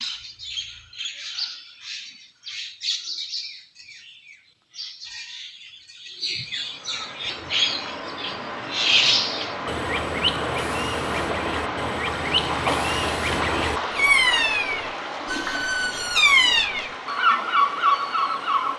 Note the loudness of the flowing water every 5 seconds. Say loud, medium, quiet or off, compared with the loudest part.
off, medium, loud, medium.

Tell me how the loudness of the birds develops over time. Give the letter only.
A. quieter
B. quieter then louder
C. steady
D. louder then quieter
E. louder
E.